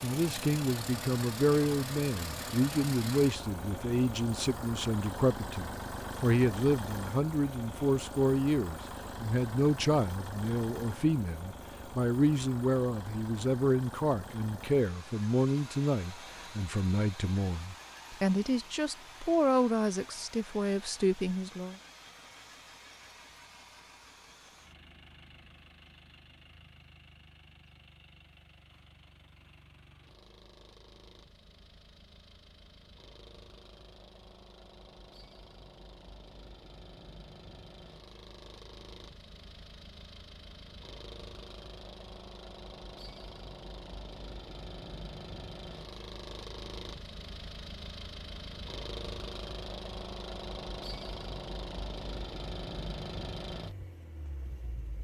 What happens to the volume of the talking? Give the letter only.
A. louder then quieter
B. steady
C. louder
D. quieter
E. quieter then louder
B.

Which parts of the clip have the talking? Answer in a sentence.
The talking can be heard from 0.0 to 21.8 s.